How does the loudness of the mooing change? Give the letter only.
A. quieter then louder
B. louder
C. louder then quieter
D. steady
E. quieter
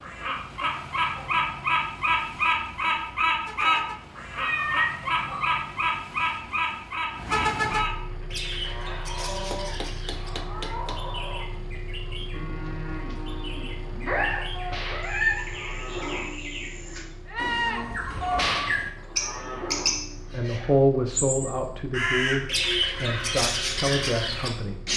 B.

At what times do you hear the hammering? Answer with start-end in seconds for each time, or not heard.
9.5-11.1.